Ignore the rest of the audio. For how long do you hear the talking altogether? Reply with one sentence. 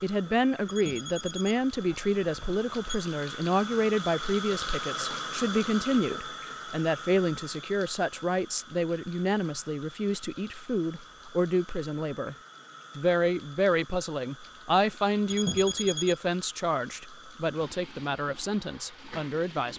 The talking can be heard for 19 seconds in total.